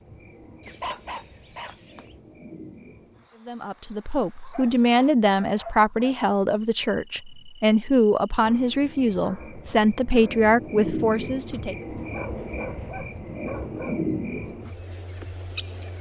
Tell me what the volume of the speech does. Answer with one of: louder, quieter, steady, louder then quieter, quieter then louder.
steady.